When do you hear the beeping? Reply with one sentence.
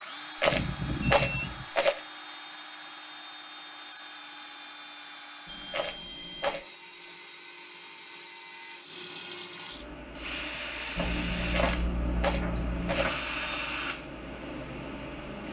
The beeping can be heard from 0.5 to 1.6 s, from 5.5 to 6.6 s and from 10.9 to 13.2 s.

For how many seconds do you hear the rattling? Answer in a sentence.
You can hear the rattling for 4 seconds altogether.